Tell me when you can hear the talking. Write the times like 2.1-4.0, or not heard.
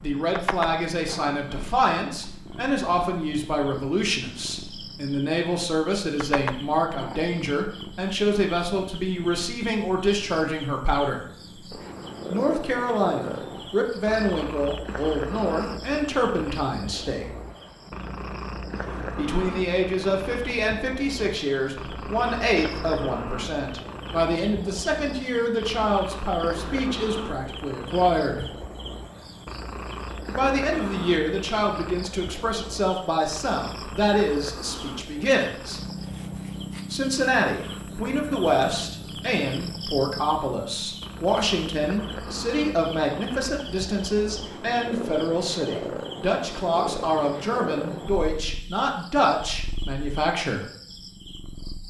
0.0-11.2, 12.3-17.3, 19.1-28.4, 30.4-35.8, 36.9-50.6.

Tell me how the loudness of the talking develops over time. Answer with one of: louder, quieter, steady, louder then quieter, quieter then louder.
steady.